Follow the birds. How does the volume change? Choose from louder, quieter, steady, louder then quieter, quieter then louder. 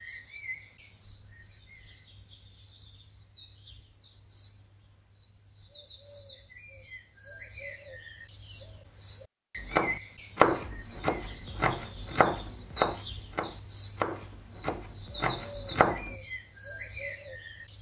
louder.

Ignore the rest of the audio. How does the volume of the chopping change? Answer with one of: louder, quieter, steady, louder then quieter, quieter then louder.
quieter.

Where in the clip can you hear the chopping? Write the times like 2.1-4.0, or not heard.
9.6-16.1.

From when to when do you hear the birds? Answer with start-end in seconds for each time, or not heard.
0.0-17.7.